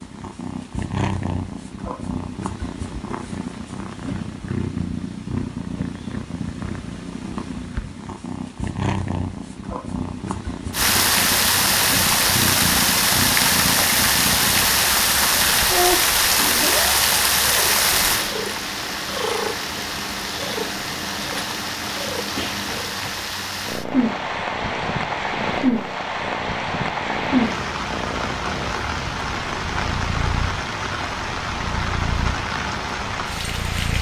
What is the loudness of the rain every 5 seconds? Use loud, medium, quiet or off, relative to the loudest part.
off, off, loud, loud, medium, medium, medium.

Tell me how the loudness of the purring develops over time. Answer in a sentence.
The volume of the purring stays about the same.